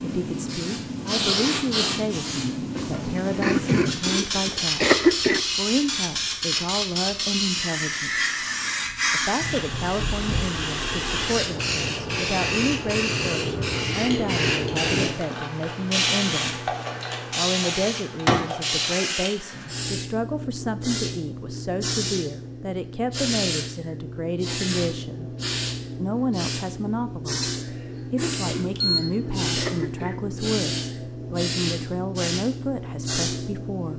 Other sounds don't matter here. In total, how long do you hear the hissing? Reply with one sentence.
The hissing can be heard for 34 seconds in total.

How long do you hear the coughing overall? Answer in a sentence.
You can hear the coughing for 4 seconds altogether.